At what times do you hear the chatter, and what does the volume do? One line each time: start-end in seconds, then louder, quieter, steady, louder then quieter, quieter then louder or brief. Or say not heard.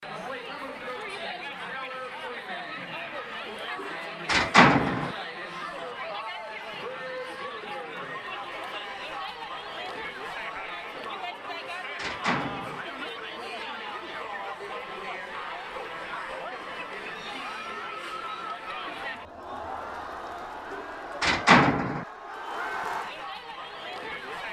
0.0-24.4 steady.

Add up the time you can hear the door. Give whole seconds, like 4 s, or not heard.
4 s.